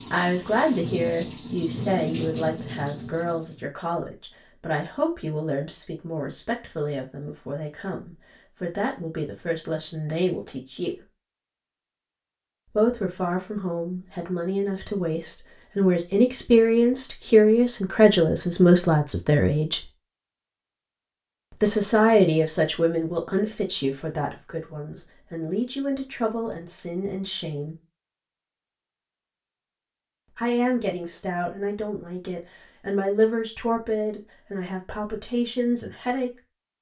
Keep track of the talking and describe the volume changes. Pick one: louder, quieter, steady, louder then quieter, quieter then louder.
louder then quieter.